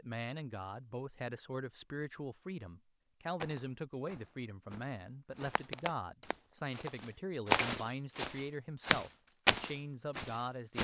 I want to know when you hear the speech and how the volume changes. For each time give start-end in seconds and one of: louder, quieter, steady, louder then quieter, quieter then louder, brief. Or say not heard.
0.0-10.7 steady.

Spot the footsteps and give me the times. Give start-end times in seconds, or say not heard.
3.4-10.7.